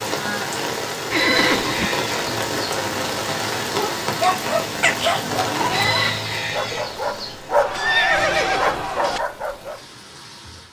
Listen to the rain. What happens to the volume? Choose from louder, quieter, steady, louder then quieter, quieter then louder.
quieter.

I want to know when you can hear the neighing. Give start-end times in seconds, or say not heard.
1.1-1.9, 7.5-9.2.